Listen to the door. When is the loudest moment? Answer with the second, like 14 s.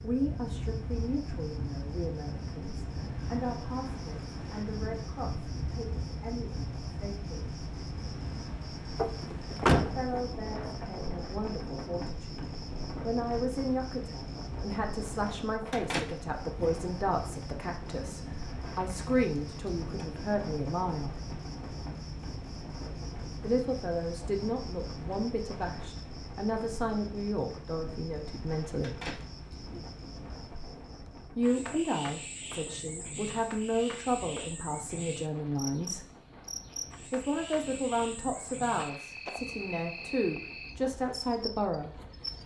10 s.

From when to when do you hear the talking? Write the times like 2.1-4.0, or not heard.
0.0-7.5, 9.8-21.1, 23.4-28.9, 31.2-36.1, 37.1-41.9.